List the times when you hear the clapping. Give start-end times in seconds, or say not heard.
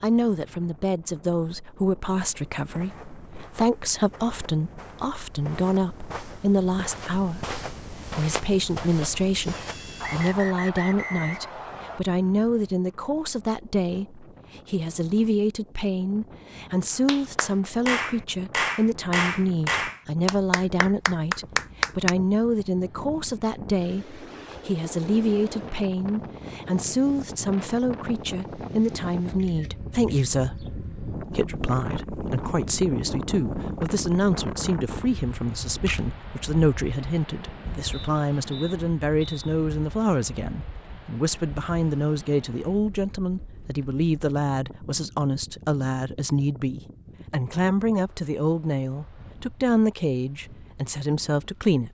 17.1-22.1.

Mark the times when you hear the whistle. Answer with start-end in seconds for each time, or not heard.
10.0-12.0, 37.9-39.4.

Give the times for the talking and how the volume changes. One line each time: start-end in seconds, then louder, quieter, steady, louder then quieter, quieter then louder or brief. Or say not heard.
0.0-51.8 steady.